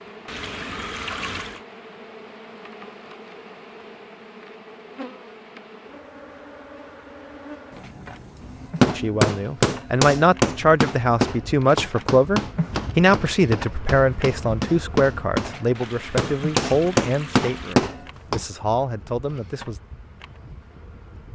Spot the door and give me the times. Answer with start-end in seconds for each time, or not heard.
not heard.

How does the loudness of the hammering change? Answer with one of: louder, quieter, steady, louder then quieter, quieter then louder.
quieter then louder.